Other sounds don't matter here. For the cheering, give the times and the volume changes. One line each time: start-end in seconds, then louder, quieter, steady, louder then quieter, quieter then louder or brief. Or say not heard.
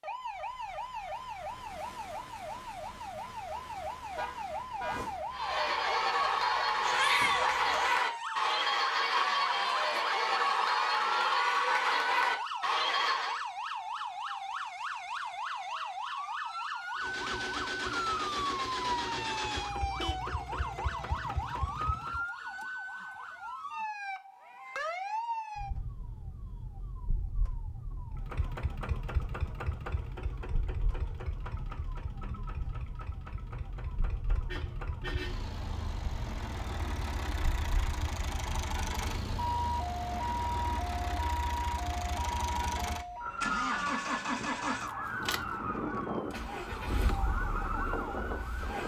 5.3-13.4 steady.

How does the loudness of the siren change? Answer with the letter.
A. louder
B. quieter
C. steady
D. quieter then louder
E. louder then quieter
D.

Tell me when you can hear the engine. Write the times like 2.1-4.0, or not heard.
16.9-22.2, 28.1-48.8.